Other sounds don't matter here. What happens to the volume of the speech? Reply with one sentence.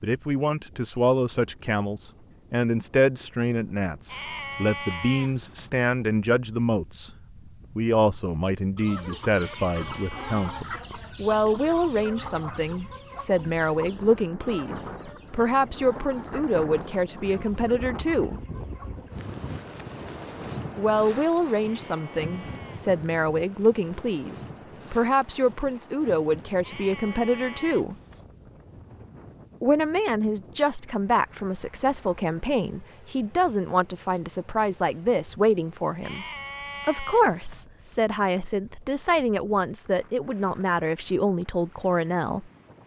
The loudness of the speech stays about the same.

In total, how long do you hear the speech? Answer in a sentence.
The speech can be heard for 37 seconds in total.